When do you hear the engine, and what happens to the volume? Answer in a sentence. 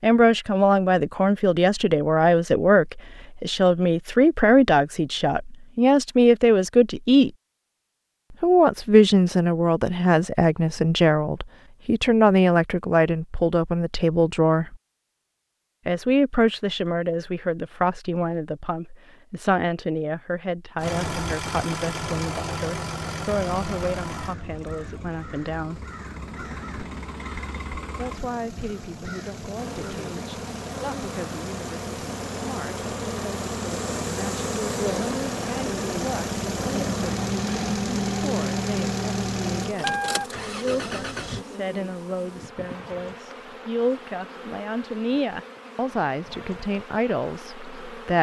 You can hear the engine from 20.8 to 41.5 s, getting quieter then louder.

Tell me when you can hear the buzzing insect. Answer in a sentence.
You can hear the buzzing insect from 29.6 to 48.1 s.